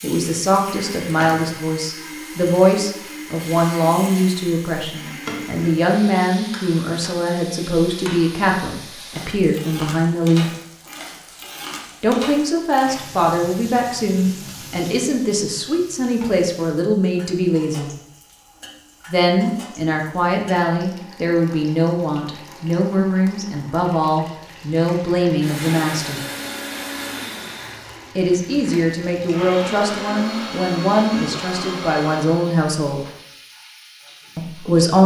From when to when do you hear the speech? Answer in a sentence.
You can hear the speech from 0.0 to 10.5 s, from 12.0 to 17.9 s, from 19.1 to 26.2 s, from 28.1 to 33.0 s and from 34.4 to 35.0 s.